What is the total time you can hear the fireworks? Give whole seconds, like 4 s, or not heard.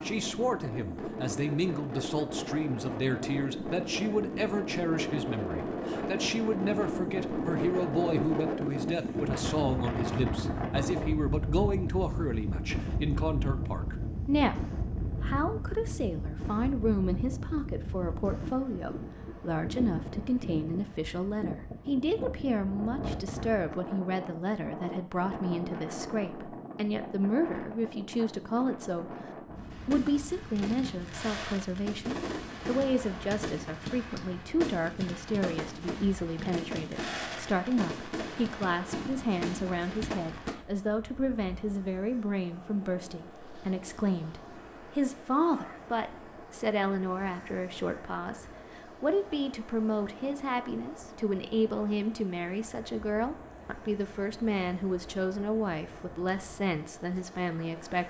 11 s.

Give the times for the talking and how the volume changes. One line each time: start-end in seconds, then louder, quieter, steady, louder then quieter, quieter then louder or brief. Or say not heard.
0.0-29.1 steady
29.9-58.0 steady.